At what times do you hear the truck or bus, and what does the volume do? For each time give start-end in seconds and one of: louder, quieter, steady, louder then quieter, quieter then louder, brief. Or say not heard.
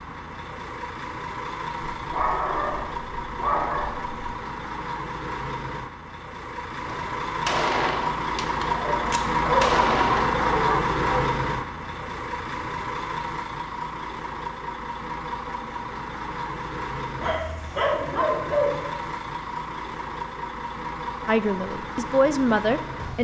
0.0-23.1 louder then quieter.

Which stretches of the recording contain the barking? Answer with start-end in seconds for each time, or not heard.
1.9-4.3, 8.7-11.3, 17.2-18.8.